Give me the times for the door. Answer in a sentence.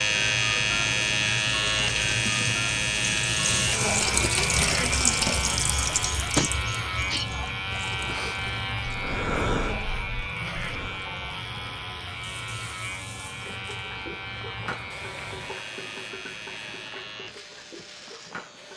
The door can't be heard in this clip.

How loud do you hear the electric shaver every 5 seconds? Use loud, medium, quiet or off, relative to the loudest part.
loud, medium, medium, quiet.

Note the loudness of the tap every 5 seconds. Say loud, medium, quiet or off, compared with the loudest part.
loud, loud, quiet, quiet.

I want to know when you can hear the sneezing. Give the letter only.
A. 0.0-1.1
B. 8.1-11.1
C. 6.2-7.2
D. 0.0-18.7
C.